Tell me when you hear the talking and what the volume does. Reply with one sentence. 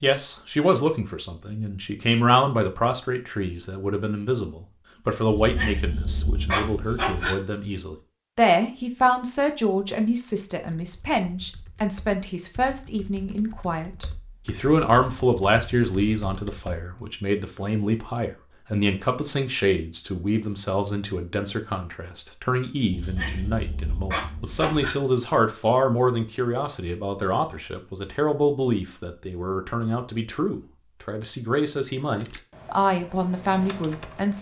The talking can be heard from 0.0 to 34.3 s, at a steady volume.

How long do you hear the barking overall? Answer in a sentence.
You can hear the barking for 4 seconds altogether.